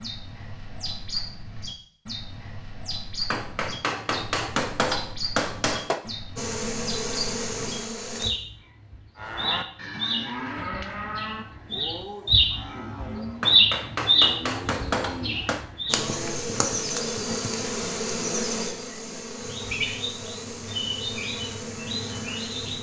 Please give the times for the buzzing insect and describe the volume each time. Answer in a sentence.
You can hear the buzzing insect briefly from 6.3 to 8.3 s; and from 15.8 to 22.7 s, getting quieter.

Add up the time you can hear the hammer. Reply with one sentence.
You can hear the hammer for 5 seconds altogether.